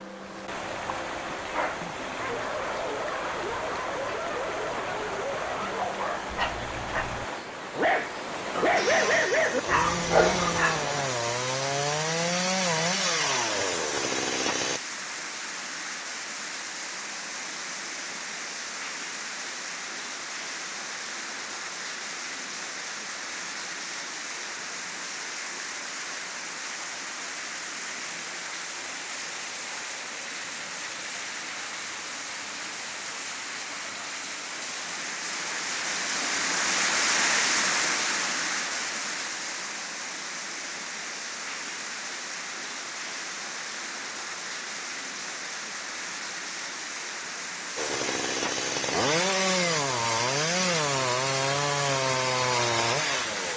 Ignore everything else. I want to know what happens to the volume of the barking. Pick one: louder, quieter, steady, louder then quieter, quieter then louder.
louder.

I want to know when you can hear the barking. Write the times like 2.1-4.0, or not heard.
1.5-10.9.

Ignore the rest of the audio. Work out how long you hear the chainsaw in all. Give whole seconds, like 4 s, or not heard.
12 s.